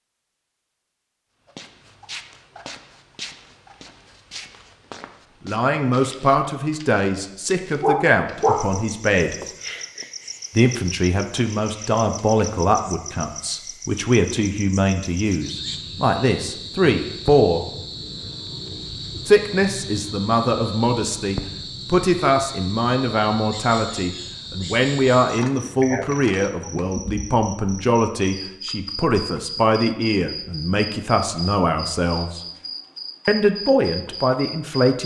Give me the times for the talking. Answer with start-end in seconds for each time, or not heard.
5.5-9.3, 10.6-17.6, 19.2-32.4, 33.2-35.0.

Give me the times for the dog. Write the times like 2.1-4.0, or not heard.
7.8-8.7, 25.4-26.9.